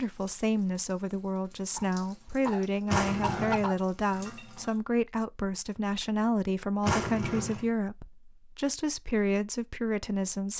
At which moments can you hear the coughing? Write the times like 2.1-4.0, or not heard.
1.8-3.8.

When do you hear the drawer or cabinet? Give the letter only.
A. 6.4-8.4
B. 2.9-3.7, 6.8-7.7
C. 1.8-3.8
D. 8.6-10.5
B.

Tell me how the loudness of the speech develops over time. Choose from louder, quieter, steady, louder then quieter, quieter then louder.
steady.